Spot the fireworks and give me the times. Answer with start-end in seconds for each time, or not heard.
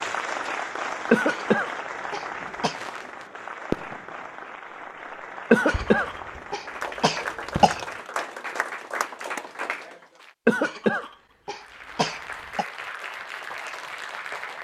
2.7-4.0, 5.7-6.5, 7.5-8.0.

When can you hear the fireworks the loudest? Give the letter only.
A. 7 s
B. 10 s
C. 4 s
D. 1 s
C.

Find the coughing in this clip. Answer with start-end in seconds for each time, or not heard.
1.1-2.8, 5.5-7.8, 10.4-12.7.